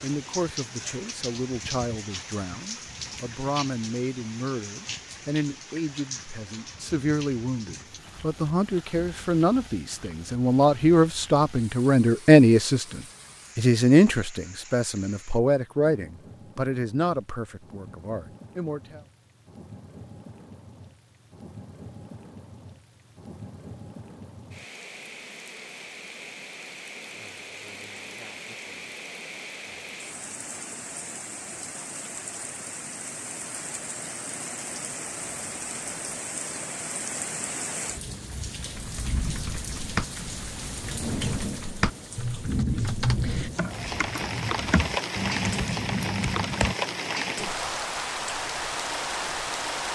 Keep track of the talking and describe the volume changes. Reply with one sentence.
The loudness of the talking goes up, then down.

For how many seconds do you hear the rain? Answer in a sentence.
The rain can be heard for 50 seconds in total.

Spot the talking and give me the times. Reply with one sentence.
The talking can be heard from 0.0 to 19.0 s.